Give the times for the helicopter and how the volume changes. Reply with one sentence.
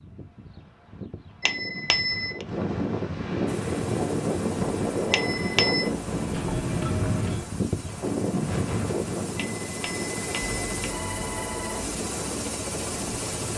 The helicopter can be heard from 3.5 to 13.5 s, getting louder.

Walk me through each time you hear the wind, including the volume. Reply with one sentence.
The wind can be heard from 0.0 to 13.5 s, getting louder then quieter.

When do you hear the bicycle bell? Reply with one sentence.
The bicycle bell can be heard from 1.4 to 2.5 s, from 5.1 to 5.9 s and from 9.3 to 10.9 s.